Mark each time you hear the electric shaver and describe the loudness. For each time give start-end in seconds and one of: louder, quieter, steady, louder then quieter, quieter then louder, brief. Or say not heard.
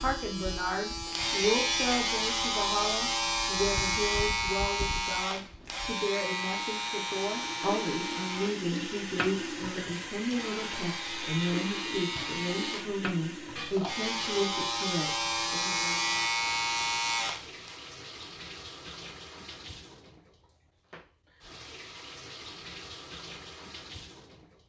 0.0-17.8 quieter then louder.